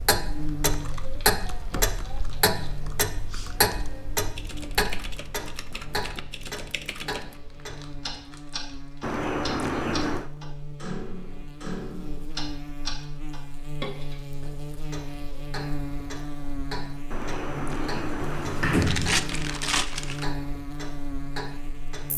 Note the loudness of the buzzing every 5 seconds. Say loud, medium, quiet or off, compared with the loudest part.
loud, medium, loud, loud, loud.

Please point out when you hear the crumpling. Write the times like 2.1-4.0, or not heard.
0.8-2.8, 7.5-9.2, 18.8-20.2.